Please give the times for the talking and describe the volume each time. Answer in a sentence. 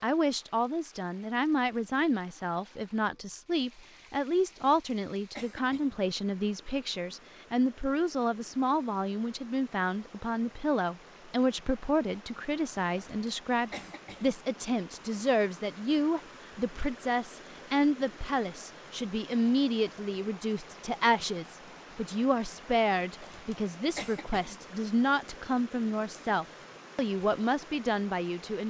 You can hear the talking from 0.0 to 28.6 s, at a steady volume.